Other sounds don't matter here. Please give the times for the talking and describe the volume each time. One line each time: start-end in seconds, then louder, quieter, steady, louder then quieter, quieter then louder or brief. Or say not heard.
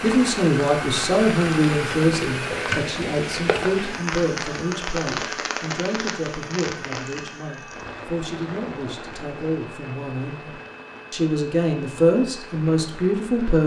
0.0-10.5 quieter
11.1-13.6 brief.